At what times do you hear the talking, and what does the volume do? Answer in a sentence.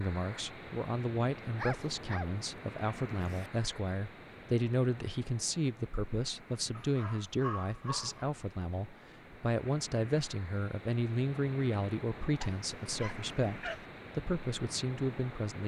You can hear the talking from 0.0 to 15.6 s, at a steady volume.